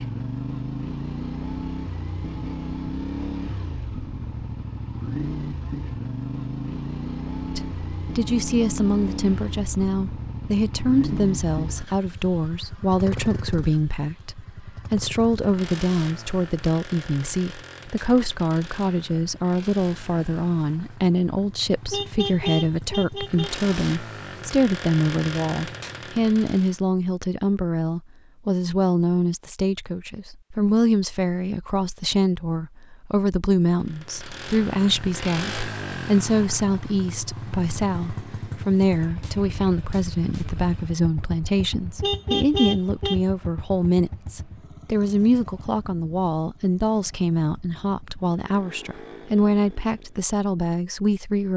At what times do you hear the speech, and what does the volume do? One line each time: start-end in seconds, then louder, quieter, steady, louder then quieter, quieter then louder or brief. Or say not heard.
7.5-51.5 steady.